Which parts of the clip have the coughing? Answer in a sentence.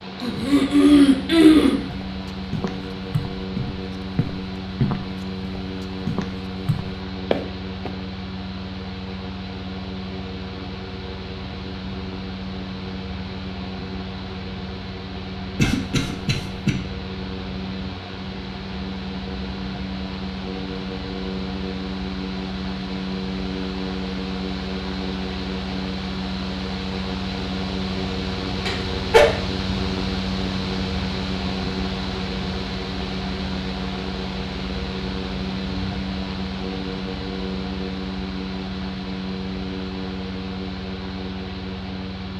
The coughing can be heard from 0.2 to 1.8 s, from 15.6 to 16.8 s and from 28.6 to 29.2 s.